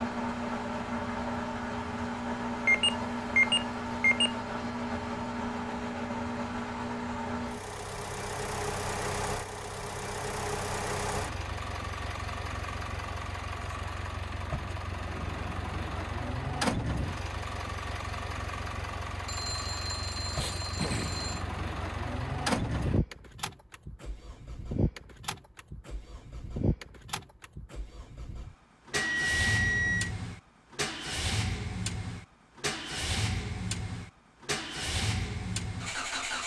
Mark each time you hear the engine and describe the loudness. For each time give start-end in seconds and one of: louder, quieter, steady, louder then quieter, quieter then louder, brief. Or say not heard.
0.0-36.4 steady.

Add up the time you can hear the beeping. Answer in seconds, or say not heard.
5 s.